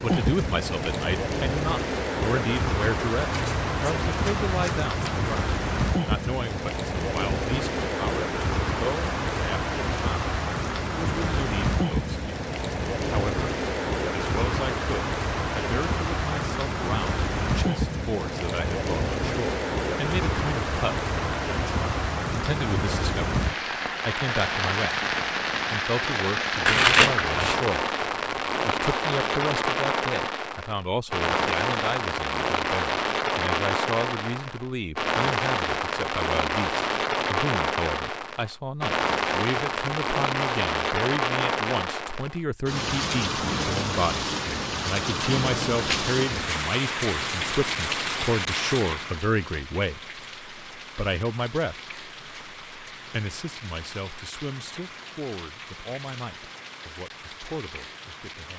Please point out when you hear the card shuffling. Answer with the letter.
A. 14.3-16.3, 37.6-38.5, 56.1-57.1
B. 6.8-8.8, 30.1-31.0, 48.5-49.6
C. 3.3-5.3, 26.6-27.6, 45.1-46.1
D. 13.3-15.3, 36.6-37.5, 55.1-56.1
C.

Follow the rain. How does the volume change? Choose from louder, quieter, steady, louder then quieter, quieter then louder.
quieter.